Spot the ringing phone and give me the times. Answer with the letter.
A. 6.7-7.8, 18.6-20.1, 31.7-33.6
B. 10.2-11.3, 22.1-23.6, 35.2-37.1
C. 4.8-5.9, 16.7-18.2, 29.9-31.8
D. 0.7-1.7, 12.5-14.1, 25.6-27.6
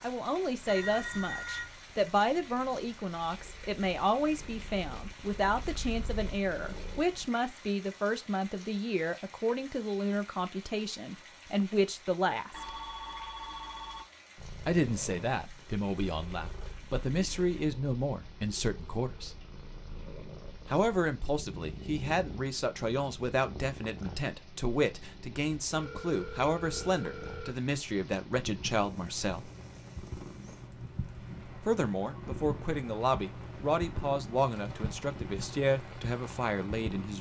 D.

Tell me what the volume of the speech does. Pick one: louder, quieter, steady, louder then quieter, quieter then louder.
steady.